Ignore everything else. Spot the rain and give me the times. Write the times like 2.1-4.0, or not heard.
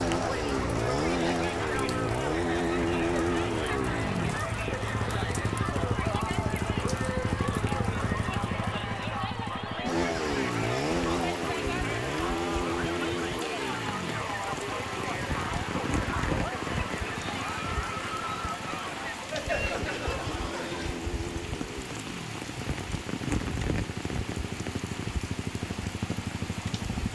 0.0-27.0.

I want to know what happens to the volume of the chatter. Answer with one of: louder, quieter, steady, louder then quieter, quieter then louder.
steady.